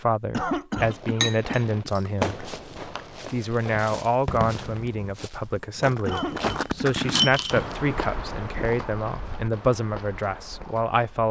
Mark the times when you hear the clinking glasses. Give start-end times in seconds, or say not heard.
1.2-2.5, 6.1-7.7.